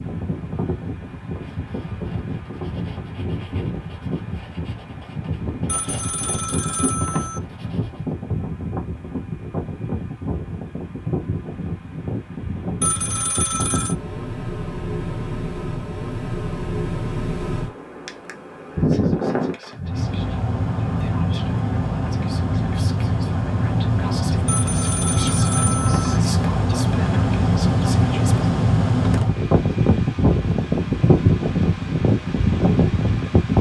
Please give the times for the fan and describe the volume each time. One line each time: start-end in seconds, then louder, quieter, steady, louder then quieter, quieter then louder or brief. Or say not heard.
0.0-33.5 louder.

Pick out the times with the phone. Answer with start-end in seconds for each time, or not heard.
5.7-7.4, 12.8-13.9, 24.4-26.2.